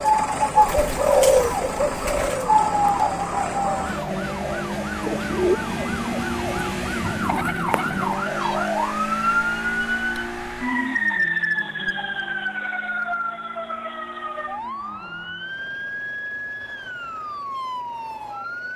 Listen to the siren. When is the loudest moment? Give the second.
11 s.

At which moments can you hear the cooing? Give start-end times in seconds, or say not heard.
0.0-8.9.